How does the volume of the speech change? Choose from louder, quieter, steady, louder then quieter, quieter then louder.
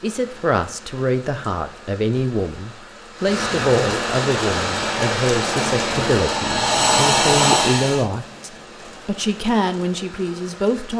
steady.